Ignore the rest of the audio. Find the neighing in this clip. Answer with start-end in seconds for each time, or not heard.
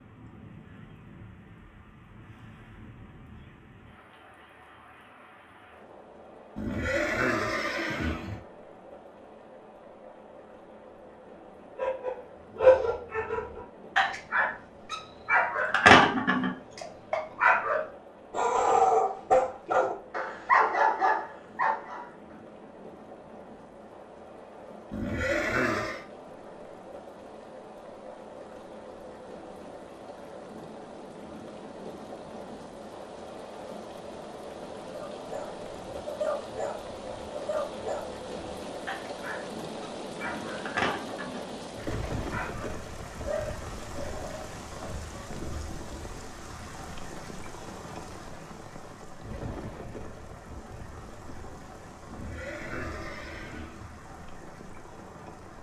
6.5-8.4, 24.9-26.1, 52.0-54.0.